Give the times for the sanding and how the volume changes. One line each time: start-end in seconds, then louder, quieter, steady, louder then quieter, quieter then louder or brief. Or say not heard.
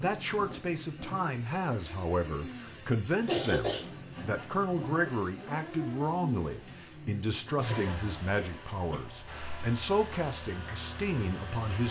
not heard.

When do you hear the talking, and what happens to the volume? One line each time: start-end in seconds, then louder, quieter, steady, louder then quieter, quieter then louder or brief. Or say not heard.
0.0-11.8 steady.